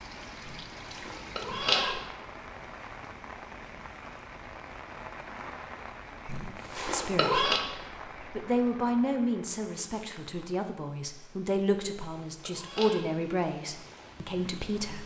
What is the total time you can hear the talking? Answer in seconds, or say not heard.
7 s.